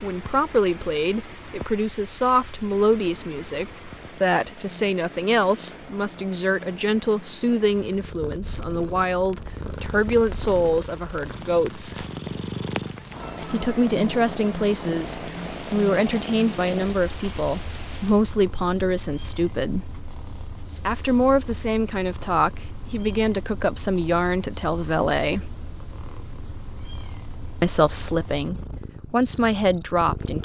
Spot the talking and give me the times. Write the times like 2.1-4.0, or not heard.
0.0-12.1, 13.5-19.9, 20.9-25.5, 27.6-30.4.